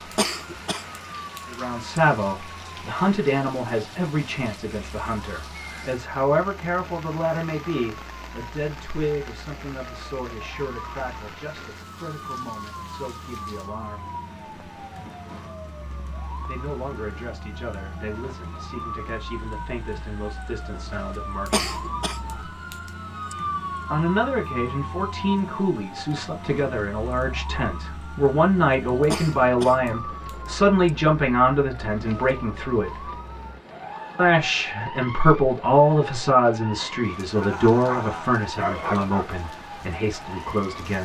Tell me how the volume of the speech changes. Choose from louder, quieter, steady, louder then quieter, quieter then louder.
quieter then louder.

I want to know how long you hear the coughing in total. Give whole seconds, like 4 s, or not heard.
6 s.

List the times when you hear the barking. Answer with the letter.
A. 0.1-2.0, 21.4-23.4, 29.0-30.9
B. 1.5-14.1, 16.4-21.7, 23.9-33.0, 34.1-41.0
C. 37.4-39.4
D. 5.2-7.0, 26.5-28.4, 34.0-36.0
C.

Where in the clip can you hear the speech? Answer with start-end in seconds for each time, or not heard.
1.5-14.1, 16.4-21.7, 23.9-33.0, 34.1-41.0.